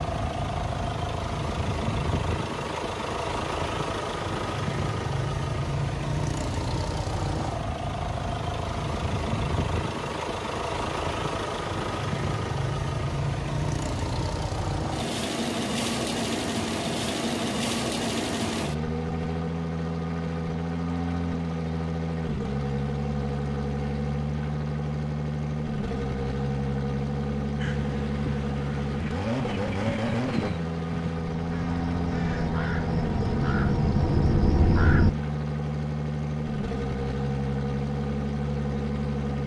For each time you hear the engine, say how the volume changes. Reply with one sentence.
You can hear the engine from 0.0 to 39.4 s, at a steady volume.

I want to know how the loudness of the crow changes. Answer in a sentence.
The loudness of the crow goes up.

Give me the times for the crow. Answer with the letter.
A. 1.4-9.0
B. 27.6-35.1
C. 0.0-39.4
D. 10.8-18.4
B.